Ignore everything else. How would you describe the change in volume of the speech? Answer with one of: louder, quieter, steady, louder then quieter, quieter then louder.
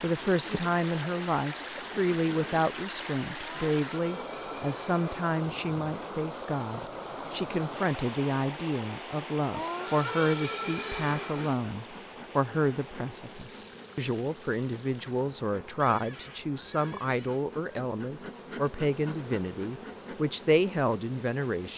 steady.